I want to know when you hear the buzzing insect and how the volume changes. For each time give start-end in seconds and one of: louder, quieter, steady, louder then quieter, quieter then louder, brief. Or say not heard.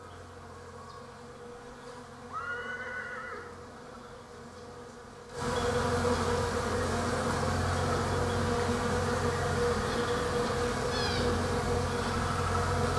0.0-12.9 louder.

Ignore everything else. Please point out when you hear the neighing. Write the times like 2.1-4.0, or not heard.
2.3-3.5.